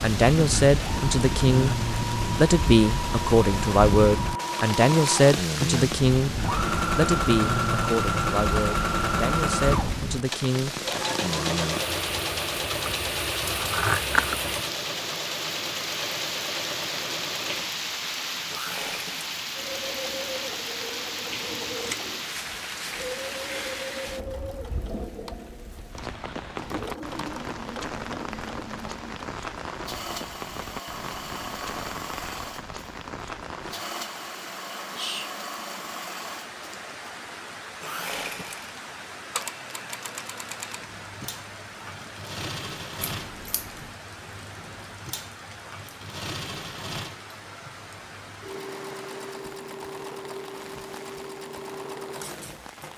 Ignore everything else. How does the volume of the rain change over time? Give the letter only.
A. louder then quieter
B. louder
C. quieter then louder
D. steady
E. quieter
E.